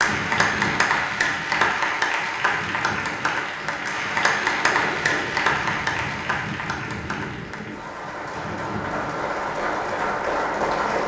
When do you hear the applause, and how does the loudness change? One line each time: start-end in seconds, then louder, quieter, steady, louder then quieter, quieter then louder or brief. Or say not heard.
0.0-11.0 quieter then louder.